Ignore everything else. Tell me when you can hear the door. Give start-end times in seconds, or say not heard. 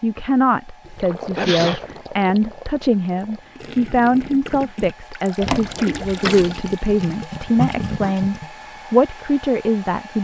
5.4-6.5.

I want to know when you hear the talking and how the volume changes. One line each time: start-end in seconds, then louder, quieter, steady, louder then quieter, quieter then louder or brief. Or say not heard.
0.0-10.1 steady.